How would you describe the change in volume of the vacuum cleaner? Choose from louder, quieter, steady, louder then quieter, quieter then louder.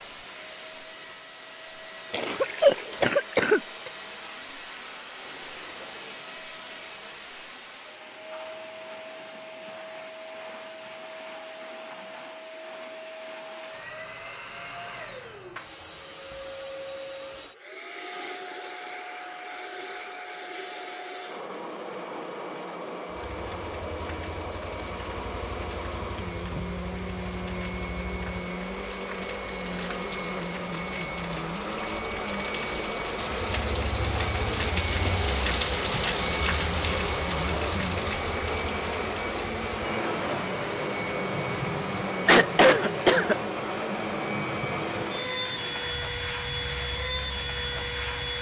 louder.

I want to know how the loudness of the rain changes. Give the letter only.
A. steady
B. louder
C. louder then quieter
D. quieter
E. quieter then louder
C.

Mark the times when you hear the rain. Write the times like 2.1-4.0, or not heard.
23.2-48.3.